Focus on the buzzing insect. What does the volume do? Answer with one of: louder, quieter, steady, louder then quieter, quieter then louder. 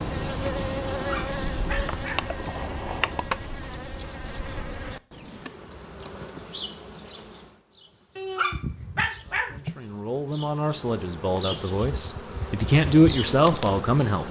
quieter then louder.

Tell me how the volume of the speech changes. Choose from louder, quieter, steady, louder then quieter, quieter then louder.
louder.